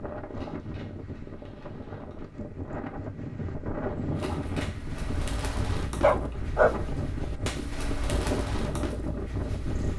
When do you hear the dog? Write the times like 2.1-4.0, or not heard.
6.0-7.6.